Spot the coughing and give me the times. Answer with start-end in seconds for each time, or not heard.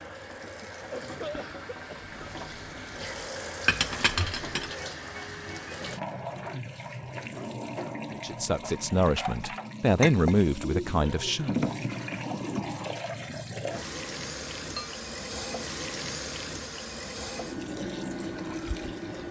0.8-2.5.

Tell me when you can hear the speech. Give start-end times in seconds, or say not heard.
8.2-11.7.